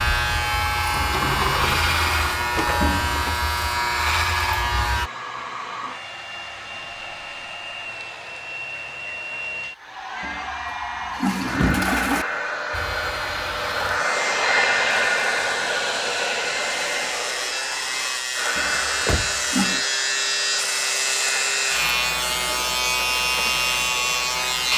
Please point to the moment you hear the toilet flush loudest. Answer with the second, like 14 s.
12 s.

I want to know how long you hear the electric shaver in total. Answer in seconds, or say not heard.
17 s.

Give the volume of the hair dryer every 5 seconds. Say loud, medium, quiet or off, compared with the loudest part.
medium, medium, loud, loud, medium.